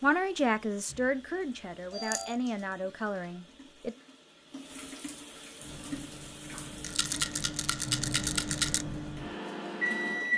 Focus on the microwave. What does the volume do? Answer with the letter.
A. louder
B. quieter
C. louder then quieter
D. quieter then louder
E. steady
A.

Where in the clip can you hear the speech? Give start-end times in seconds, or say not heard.
0.0-4.0.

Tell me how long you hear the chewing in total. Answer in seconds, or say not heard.
not heard.